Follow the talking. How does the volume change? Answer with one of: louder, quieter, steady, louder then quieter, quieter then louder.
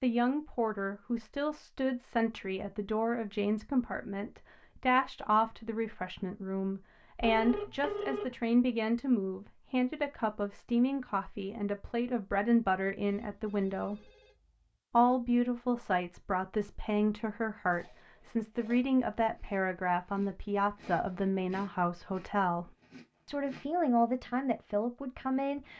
steady.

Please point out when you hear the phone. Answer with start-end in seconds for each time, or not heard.
7.2-8.3, 13.1-14.6.